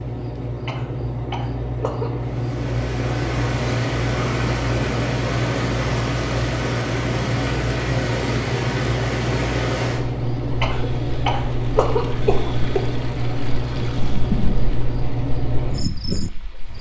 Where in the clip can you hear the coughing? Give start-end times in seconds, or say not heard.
0.7-2.1, 10.6-12.8.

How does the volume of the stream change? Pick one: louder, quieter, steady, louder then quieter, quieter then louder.
quieter then louder.